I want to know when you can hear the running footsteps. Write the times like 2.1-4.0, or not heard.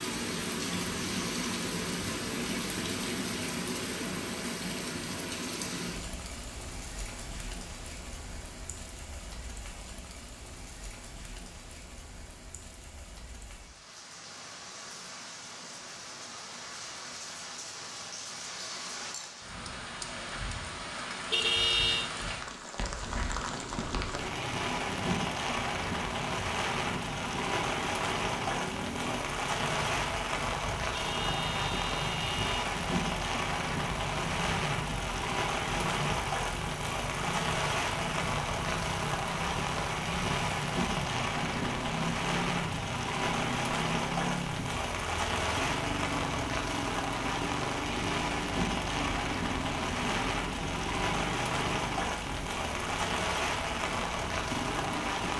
not heard.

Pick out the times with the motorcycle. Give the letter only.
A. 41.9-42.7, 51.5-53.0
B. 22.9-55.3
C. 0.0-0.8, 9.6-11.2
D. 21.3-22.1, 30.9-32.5
B.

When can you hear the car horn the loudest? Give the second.
22 s.